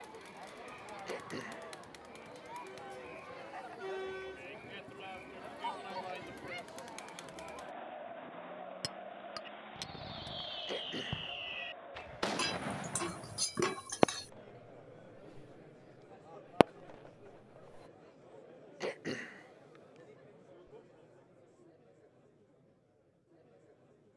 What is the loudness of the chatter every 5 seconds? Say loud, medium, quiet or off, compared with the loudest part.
loud, loud, medium, medium, quiet.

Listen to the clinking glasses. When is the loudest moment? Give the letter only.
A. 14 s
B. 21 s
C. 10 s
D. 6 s
A.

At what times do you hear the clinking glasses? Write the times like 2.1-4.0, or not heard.
8.8-10.3, 12.3-14.3.